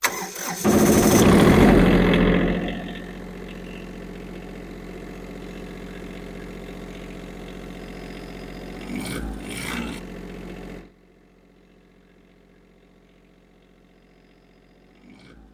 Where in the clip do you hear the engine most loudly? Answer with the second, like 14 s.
2 s.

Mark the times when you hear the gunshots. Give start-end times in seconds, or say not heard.
0.6-2.0.